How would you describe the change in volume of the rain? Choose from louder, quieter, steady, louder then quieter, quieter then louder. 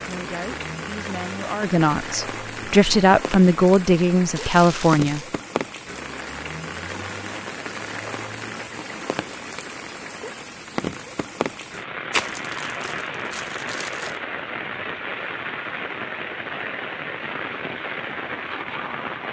steady.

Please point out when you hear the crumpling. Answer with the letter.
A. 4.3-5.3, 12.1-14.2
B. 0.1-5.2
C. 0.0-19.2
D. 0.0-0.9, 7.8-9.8
A.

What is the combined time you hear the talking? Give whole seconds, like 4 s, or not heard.
5 s.